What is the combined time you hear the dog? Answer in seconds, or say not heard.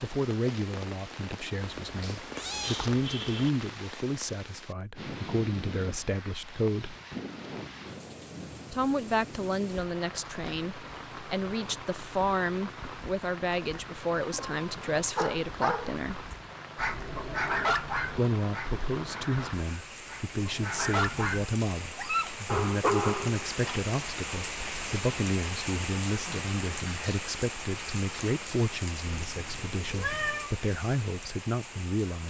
9 s.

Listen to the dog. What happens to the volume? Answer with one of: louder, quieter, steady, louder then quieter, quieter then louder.
quieter then louder.